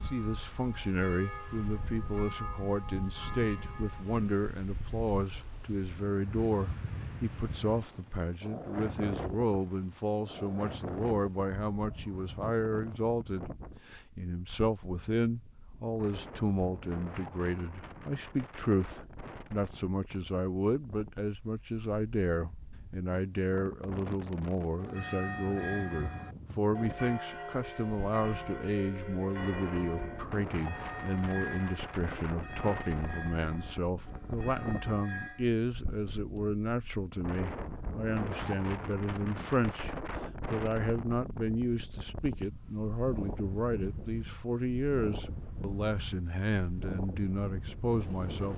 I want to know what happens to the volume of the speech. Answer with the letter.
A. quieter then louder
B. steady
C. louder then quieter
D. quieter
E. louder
B.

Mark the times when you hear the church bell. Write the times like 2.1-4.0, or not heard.
0.0-4.2, 24.7-35.5.